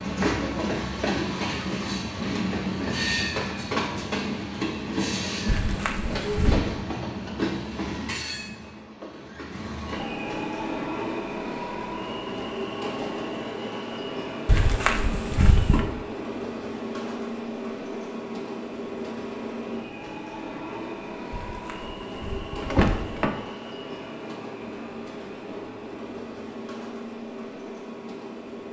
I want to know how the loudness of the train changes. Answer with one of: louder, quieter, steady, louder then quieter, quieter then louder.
quieter.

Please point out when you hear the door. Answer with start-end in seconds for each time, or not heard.
5.5-6.6, 14.4-15.8, 21.3-23.4.